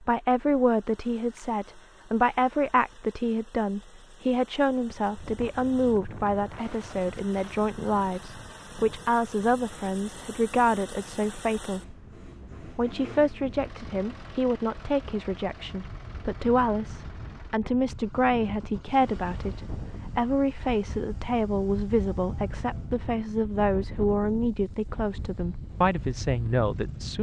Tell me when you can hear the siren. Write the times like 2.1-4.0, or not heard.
not heard.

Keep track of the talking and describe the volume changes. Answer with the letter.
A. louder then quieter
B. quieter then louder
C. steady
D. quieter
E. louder
C.